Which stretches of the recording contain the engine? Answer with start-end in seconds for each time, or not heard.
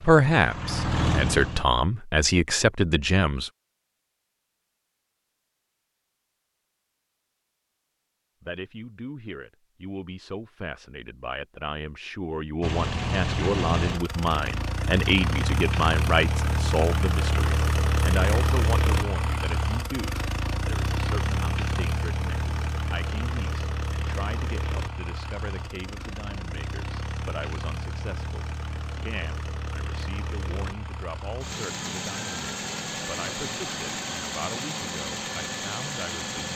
0.0-1.6, 12.6-36.5.